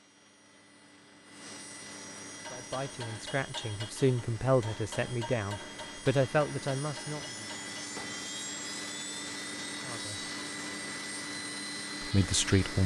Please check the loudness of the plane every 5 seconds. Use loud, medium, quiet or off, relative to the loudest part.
medium, loud, loud.